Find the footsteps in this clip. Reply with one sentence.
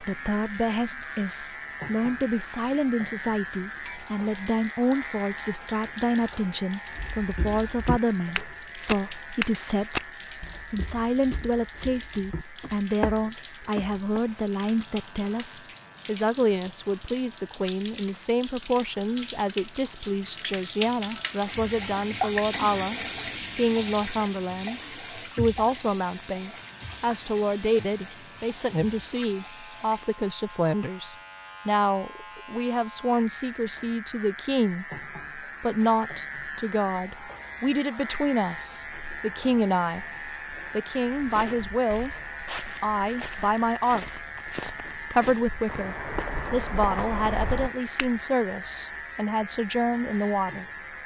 You can hear the footsteps from 7.0 to 14.2 s and from 41.0 to 48.1 s.